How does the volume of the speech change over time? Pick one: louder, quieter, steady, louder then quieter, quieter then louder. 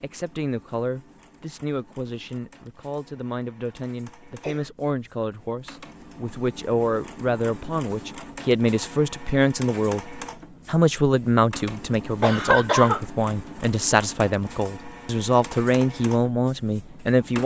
louder.